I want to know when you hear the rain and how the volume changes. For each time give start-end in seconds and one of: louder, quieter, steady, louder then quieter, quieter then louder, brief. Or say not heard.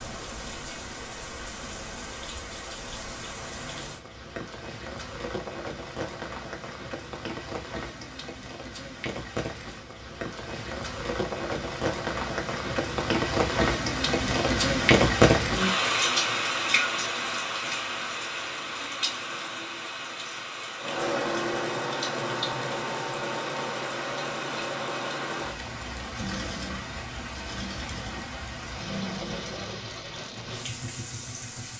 0.0-31.7 louder then quieter.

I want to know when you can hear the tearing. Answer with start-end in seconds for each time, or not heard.
not heard.